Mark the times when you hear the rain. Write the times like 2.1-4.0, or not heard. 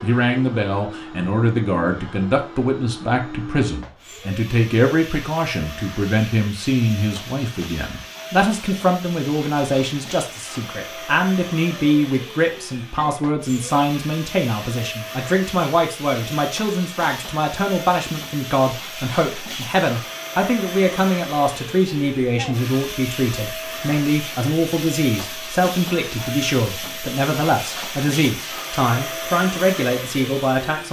not heard.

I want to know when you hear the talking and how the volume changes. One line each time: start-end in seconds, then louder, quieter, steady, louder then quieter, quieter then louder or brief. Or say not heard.
0.0-30.8 steady.